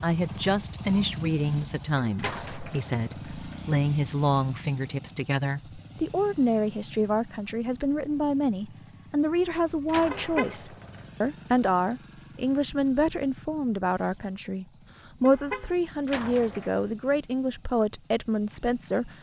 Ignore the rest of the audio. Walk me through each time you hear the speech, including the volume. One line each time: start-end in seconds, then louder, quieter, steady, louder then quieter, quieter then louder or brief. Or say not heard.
0.0-19.1 steady.